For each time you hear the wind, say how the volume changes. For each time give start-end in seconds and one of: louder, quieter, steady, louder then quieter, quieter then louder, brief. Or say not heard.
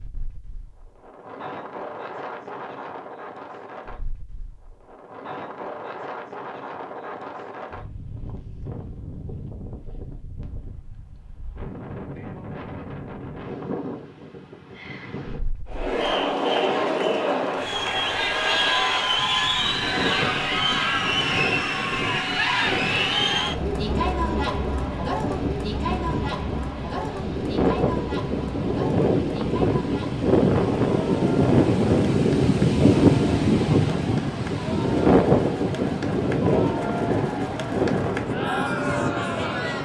0.0-39.7 louder.